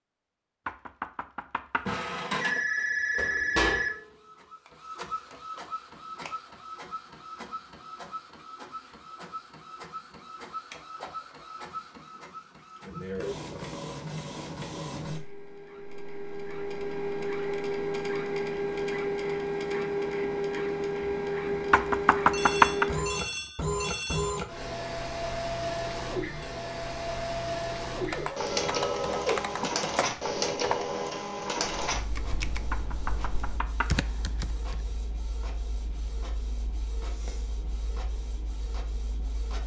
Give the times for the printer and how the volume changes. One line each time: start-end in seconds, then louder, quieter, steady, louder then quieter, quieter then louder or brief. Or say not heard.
1.9-39.6 louder then quieter.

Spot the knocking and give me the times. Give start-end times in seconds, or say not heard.
0.7-1.9, 21.7-22.9, 32.7-33.9.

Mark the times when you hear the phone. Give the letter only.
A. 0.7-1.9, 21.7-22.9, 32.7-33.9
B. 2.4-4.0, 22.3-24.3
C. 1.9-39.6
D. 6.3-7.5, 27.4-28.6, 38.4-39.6
B.